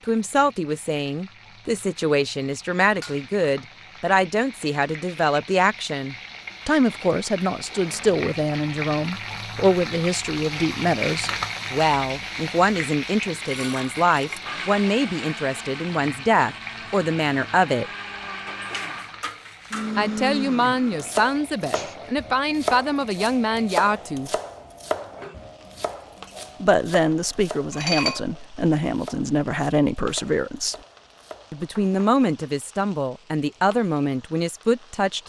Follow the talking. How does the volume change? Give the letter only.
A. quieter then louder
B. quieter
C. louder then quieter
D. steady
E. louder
D.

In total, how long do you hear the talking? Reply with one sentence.
You can hear the talking for 30 seconds altogether.